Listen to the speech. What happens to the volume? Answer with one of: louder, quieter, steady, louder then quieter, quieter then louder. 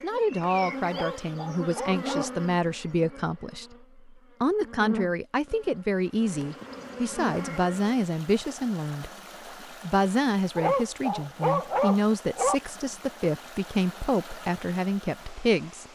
steady.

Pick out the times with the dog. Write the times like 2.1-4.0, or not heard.
0.9-2.4, 10.6-12.6.